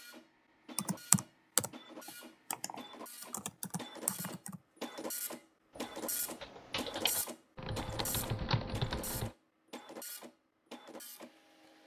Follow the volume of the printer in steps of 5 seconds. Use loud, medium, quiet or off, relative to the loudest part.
medium, loud, medium.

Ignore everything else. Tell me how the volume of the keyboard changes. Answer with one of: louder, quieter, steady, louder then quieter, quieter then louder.
quieter then louder.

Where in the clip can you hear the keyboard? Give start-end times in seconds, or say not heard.
0.8-9.3.